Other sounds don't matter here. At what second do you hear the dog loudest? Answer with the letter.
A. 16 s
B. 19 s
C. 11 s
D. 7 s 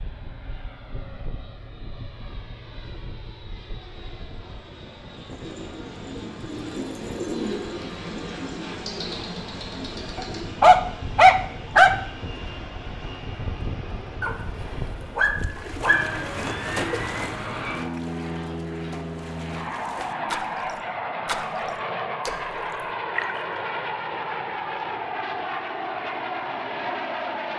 C.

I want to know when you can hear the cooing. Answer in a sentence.
The cooing can be heard from 5.2 to 10.6 s.